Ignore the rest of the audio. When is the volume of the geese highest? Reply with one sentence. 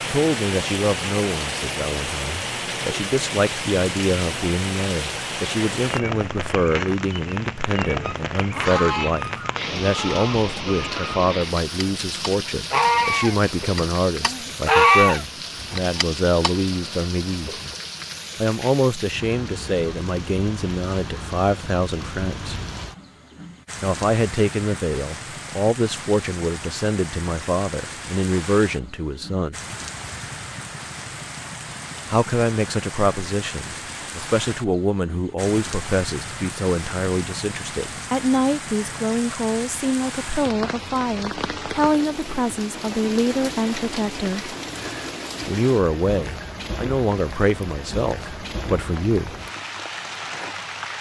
The volume of the geese peaks at 15 seconds.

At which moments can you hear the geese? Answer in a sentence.
You can hear the geese from 8.0 to 16.5 s.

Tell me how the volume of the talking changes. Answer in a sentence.
The loudness of the talking stays about the same.